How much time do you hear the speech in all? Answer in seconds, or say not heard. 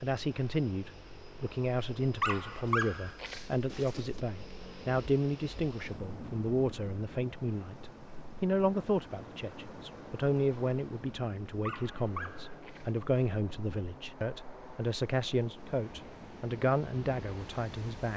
18 s.